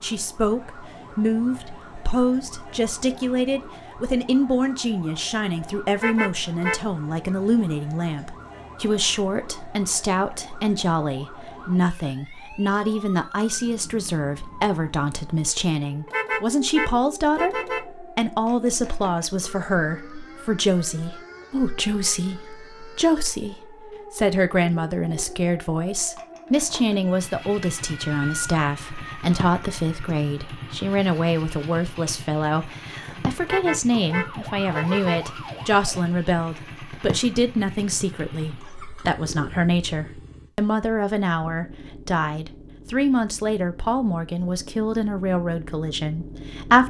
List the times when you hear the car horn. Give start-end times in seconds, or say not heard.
6.0-6.8, 16.1-17.9, 33.4-35.2.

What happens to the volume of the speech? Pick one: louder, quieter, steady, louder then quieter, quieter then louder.
steady.